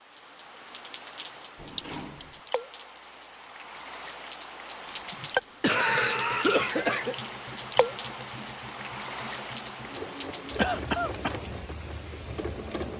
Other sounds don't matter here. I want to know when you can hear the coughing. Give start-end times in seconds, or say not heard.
1.8-2.2, 4.8-7.2, 10.6-11.4.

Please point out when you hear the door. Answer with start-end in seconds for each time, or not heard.
1.6-2.4.